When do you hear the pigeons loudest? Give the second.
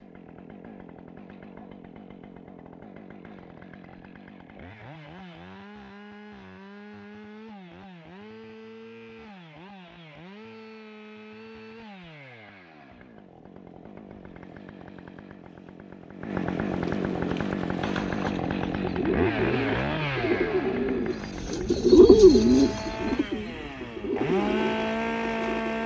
22 s.